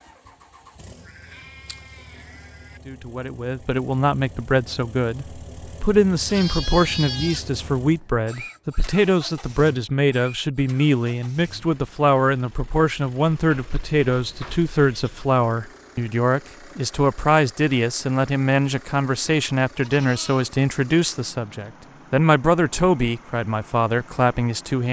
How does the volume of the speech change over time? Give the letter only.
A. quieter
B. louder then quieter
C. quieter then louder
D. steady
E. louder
D.